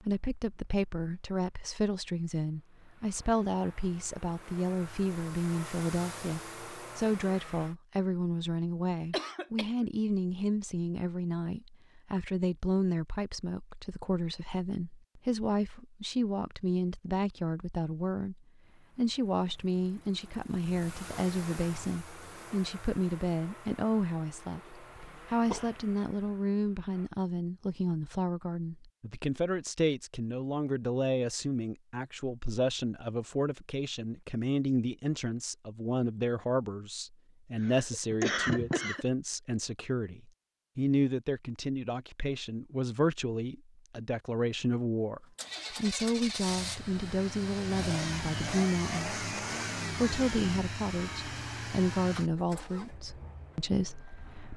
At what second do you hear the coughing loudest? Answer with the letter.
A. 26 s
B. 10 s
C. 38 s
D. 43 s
C.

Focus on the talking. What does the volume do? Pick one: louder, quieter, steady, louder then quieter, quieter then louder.
steady.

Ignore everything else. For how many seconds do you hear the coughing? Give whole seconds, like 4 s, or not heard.
3 s.